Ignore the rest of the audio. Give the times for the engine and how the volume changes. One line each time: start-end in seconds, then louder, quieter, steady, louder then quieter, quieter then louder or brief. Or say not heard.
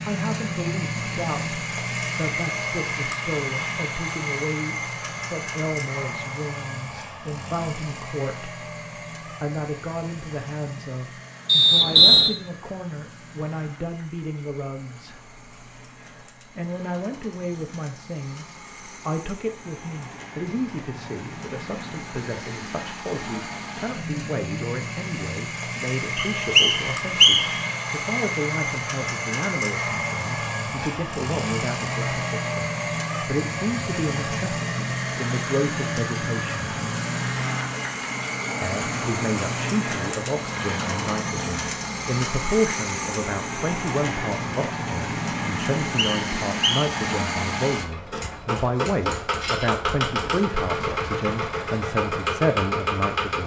0.0-53.4 quieter then louder.